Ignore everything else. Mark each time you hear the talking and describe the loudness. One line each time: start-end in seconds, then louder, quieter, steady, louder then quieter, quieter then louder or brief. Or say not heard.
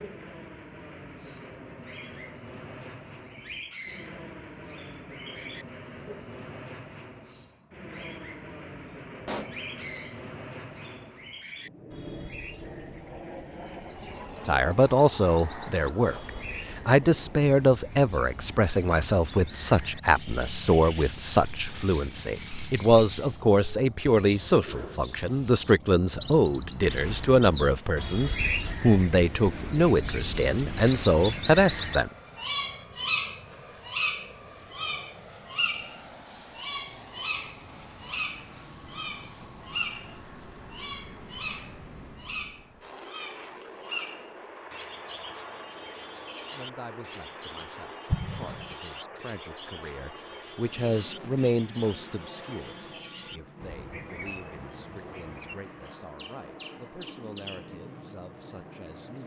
14.4-32.1 steady
46.5-59.2 louder then quieter.